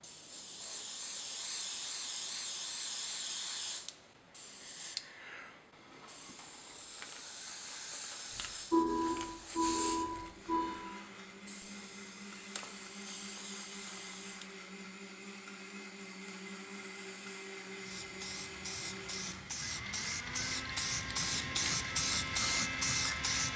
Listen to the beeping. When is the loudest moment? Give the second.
9 s.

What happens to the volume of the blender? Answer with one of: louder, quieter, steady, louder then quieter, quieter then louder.
louder.